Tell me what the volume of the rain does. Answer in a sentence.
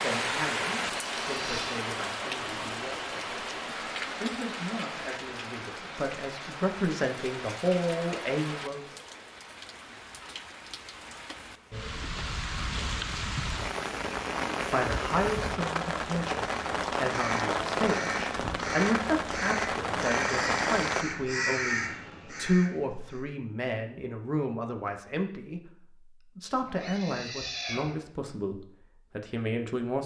The loudness of the rain goes down, then up.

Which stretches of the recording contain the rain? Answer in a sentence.
You can hear the rain from 0.0 to 21.1 s.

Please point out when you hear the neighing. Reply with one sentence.
You can hear the neighing from 0.8 to 1.8 s and from 26.6 to 28.0 s.